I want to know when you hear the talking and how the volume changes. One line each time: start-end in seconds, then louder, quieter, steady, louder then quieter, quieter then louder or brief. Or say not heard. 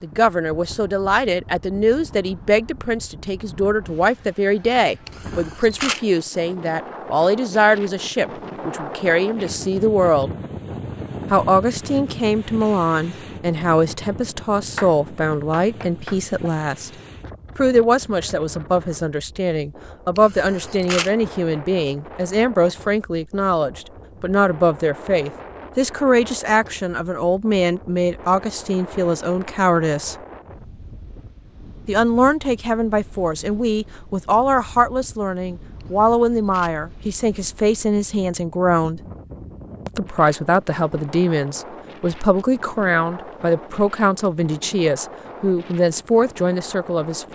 0.0-10.3 steady
11.3-16.9 steady
17.6-30.1 steady
31.9-39.0 steady
39.9-47.3 steady.